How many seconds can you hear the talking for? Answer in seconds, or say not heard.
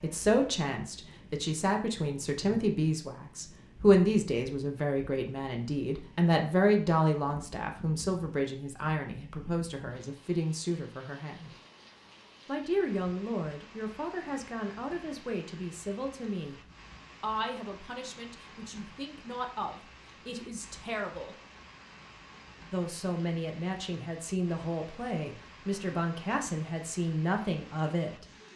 25 s.